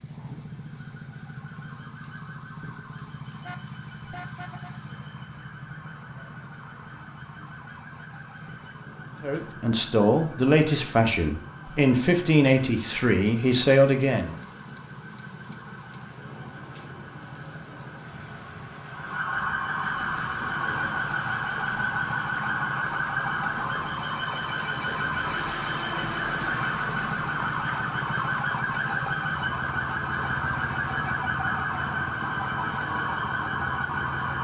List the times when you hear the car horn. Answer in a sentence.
The car horn can be heard from 3.4 to 4.8 s.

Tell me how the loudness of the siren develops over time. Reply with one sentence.
The loudness of the siren goes up.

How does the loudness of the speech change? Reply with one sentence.
The loudness of the speech stays about the same.